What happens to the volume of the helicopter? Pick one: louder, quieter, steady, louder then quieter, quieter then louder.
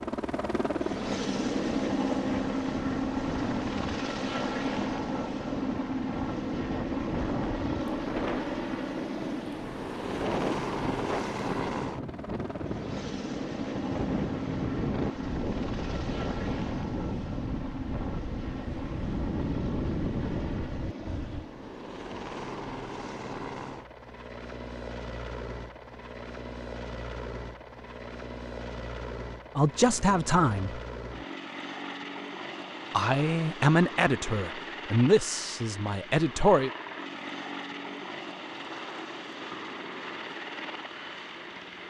quieter.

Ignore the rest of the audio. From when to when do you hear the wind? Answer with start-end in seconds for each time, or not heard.
0.2-21.4.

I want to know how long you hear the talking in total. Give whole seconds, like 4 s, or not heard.
5 s.